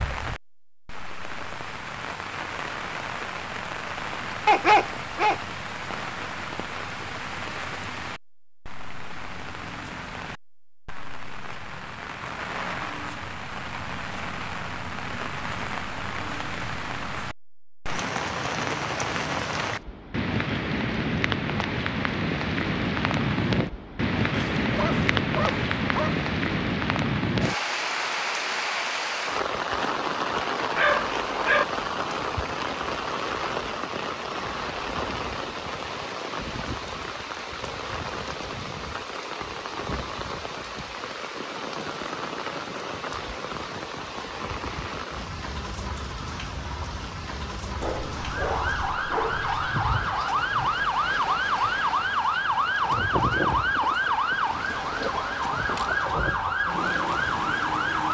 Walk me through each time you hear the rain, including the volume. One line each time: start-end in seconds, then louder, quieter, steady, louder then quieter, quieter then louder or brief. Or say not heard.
0.0-58.0 louder then quieter.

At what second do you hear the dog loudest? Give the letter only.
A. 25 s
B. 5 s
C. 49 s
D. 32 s
B.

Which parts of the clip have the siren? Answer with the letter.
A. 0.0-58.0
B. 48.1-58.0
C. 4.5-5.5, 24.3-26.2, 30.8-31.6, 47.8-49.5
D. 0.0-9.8
B.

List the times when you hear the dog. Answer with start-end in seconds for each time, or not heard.
4.5-5.5, 24.3-26.2, 30.8-31.6, 47.8-49.5.